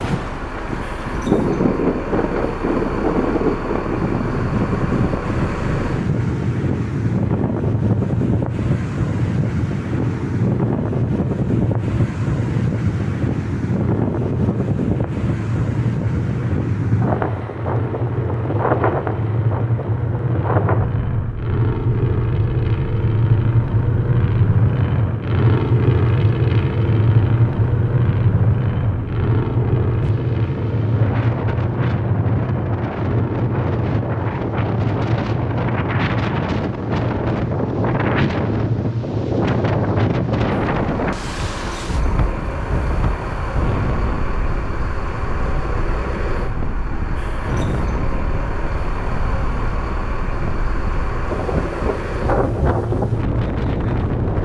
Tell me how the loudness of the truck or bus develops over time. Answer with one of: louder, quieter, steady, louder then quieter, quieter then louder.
louder then quieter.